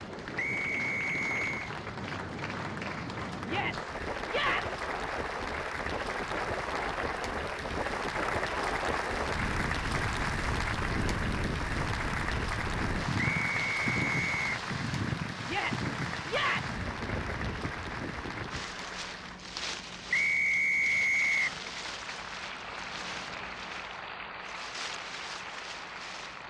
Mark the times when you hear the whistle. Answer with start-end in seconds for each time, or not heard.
0.3-1.8, 13.2-14.5, 20.1-21.6.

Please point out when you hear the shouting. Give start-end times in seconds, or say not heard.
3.5-4.8, 15.4-16.8.